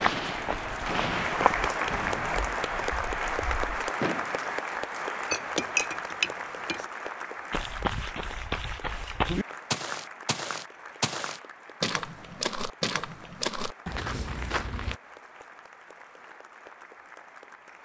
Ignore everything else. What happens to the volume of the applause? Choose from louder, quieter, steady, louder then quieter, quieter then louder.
quieter.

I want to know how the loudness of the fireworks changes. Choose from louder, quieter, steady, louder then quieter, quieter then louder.
quieter.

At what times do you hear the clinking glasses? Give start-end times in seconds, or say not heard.
5.3-6.8.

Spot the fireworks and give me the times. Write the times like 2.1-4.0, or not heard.
0.0-4.4.